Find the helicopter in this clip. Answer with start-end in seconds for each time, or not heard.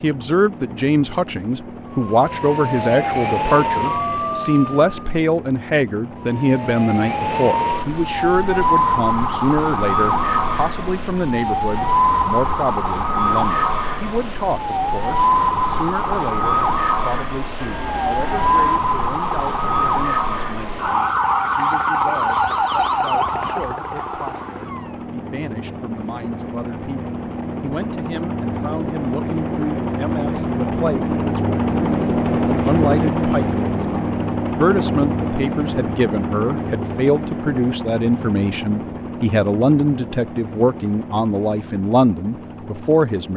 0.0-43.3.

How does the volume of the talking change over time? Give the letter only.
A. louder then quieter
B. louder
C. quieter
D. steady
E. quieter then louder
E.